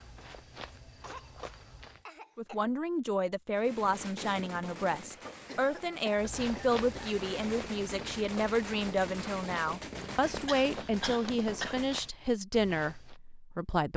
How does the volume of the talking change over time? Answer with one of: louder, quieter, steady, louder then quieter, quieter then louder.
steady.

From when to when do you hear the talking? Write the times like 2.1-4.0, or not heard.
2.4-13.9.